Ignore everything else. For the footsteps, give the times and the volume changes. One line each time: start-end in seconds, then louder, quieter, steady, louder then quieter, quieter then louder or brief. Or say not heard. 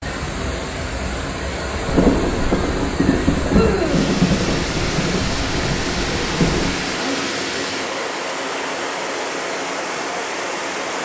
not heard.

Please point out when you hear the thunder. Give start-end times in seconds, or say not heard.
1.9-6.8.